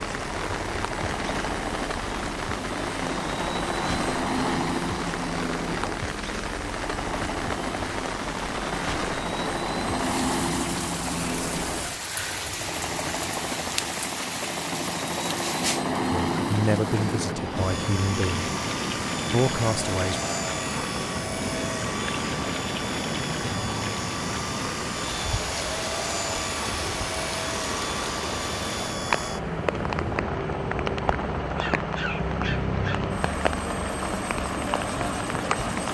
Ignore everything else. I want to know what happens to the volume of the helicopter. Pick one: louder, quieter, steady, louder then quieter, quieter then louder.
steady.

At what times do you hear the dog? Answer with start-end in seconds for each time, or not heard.
31.4-33.1.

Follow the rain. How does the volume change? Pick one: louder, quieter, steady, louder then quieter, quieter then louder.
steady.